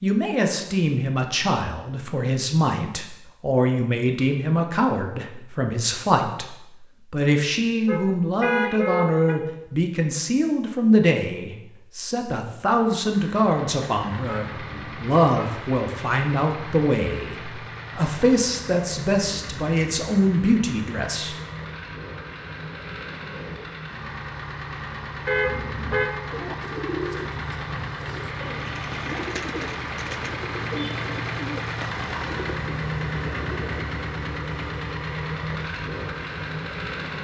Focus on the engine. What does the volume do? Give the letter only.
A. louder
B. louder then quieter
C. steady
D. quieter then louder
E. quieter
A.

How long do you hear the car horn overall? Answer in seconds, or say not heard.
4 s.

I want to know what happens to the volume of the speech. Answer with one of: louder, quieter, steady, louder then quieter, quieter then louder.
steady.